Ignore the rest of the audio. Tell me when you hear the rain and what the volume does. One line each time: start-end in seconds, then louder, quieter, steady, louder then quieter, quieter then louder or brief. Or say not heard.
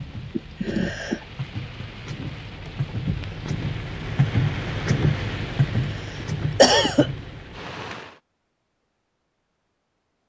0.0-8.2 louder then quieter.